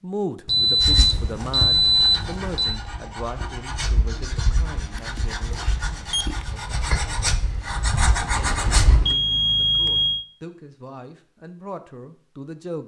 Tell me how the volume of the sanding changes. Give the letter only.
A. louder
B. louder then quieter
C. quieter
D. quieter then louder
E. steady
A.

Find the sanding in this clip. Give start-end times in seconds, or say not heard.
0.8-9.2.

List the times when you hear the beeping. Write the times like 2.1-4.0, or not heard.
0.5-2.8, 5.0-6.5, 9.0-10.2.